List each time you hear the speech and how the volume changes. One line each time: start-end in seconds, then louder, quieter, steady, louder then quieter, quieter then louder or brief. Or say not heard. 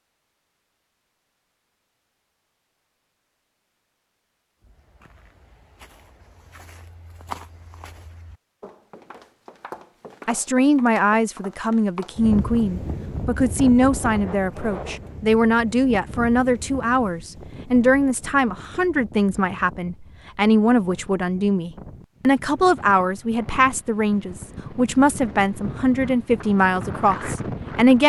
10.2-28.0 steady.